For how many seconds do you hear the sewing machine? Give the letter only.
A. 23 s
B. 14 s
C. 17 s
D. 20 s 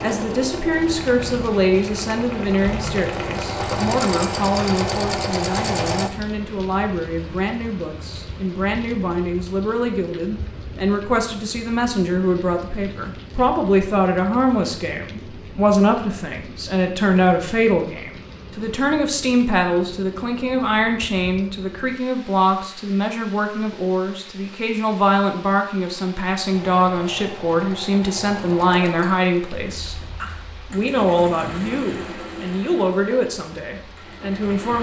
B.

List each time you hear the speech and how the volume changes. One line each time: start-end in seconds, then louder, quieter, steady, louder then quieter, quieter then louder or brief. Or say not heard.
0.0-34.7 steady.